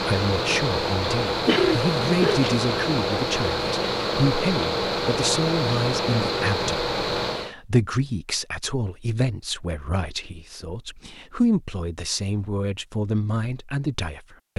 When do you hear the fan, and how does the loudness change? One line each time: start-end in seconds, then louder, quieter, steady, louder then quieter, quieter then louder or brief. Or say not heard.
0.0-7.5 steady.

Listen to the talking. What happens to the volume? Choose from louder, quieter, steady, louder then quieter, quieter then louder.
steady.